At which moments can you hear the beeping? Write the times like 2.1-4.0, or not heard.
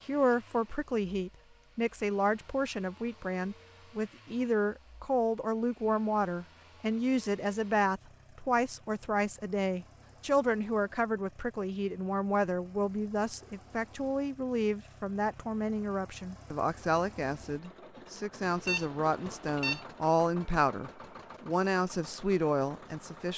18.4-19.9.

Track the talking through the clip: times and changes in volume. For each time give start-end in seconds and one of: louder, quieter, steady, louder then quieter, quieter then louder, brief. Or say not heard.
0.1-23.3 steady.